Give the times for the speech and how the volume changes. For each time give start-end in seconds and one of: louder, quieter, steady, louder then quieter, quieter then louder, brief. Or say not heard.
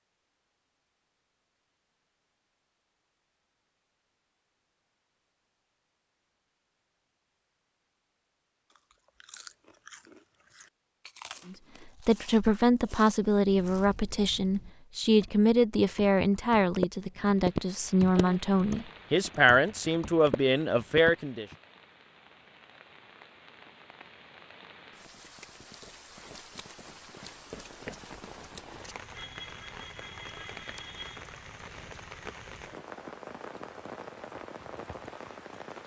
11.4-21.4 steady.